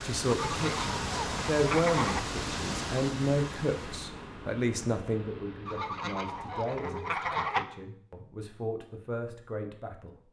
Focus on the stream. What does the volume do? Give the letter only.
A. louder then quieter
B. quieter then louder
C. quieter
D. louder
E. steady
C.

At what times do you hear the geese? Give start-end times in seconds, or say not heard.
0.2-2.2, 5.7-7.7.